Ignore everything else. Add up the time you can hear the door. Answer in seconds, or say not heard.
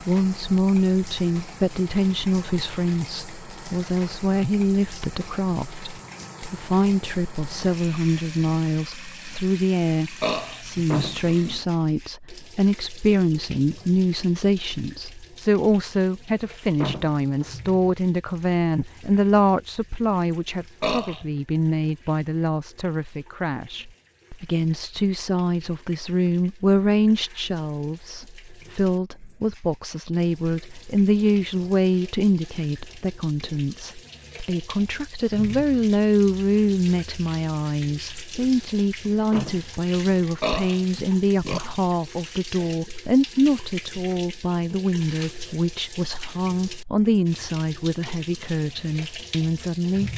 2 s.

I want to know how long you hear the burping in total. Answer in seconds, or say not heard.
3 s.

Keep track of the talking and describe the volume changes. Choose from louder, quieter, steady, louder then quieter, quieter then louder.
steady.